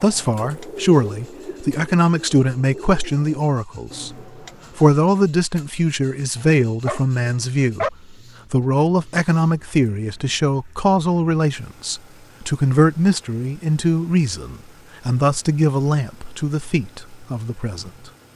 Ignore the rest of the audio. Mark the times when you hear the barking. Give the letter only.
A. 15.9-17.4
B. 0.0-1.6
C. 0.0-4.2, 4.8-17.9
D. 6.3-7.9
D.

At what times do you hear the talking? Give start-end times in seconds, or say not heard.
0.0-4.2, 4.8-17.9.